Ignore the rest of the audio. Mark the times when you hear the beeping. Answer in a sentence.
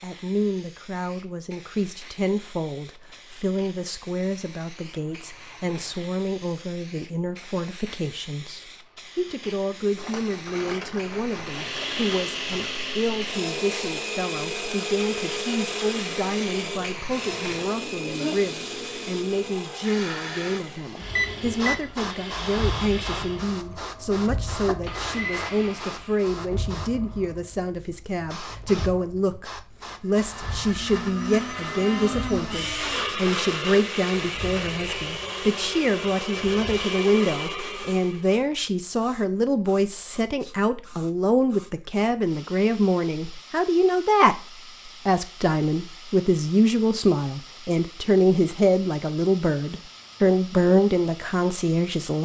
You can hear the beeping from 21.1 to 21.9 s.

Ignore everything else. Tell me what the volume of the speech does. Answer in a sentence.
The volume of the speech goes up.